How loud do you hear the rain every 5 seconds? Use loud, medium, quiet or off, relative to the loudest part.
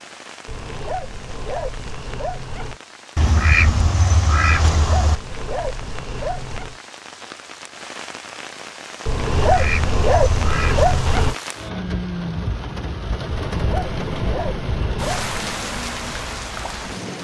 quiet, medium, loud, loud.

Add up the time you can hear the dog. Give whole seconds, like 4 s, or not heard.
9 s.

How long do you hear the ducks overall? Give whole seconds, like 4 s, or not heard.
4 s.